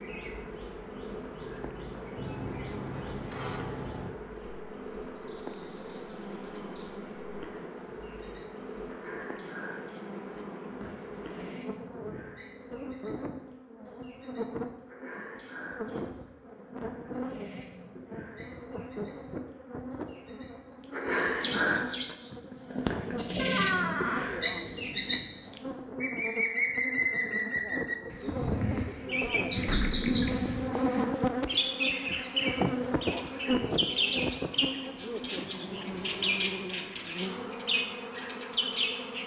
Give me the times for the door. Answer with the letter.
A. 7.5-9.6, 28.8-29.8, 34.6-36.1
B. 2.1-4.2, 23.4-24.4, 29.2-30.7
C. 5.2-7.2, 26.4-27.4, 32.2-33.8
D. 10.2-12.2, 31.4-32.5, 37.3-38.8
B.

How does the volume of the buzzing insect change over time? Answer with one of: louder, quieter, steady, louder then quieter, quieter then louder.
louder.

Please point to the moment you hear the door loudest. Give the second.
24 s.